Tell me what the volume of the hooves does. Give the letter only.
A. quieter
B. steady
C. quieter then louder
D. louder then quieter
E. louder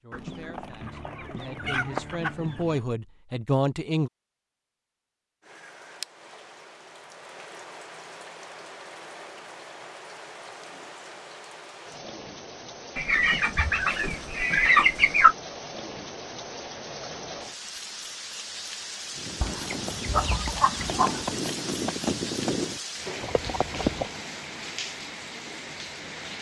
D.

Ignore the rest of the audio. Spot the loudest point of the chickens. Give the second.
15 s.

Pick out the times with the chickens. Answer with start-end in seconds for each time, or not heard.
0.1-2.8, 12.9-15.3, 19.4-21.4.